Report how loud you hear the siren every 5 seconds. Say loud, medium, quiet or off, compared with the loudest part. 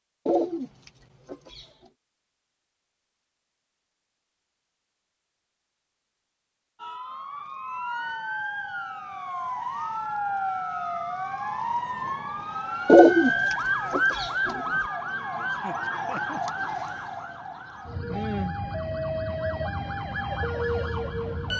off, medium, loud, loud, loud.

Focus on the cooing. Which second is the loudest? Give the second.
13 s.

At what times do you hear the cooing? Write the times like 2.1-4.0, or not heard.
0.2-1.6, 12.8-14.6.